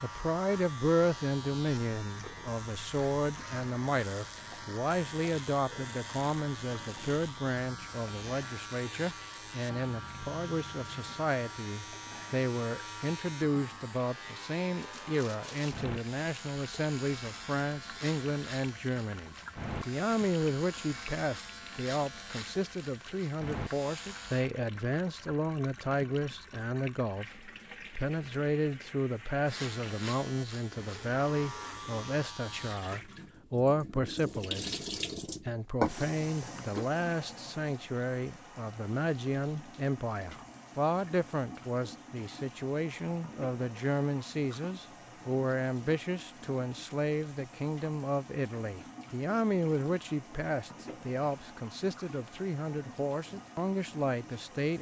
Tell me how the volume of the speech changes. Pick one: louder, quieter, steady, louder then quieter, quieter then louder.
steady.